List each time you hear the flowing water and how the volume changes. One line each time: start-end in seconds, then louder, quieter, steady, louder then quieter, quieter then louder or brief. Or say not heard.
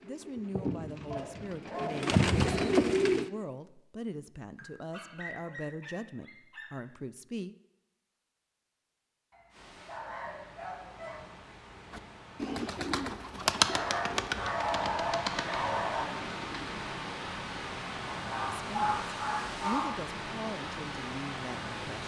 9.4-22.0 louder.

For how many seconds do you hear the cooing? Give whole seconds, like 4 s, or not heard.
8 s.